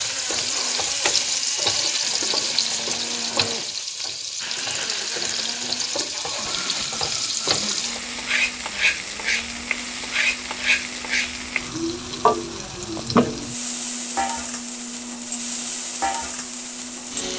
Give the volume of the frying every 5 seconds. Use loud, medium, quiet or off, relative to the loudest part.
loud, loud, loud, medium.